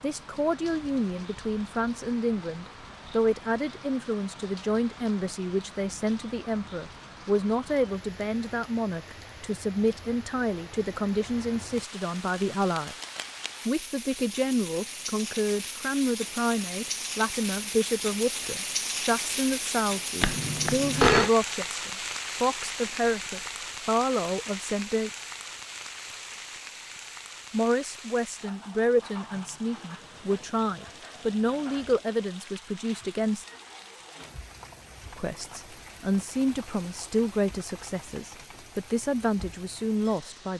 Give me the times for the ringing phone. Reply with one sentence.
The ringing phone can be heard from 20.2 to 21.3 s.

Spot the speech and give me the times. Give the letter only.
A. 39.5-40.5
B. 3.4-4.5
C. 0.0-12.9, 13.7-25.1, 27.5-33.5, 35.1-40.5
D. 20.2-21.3
C.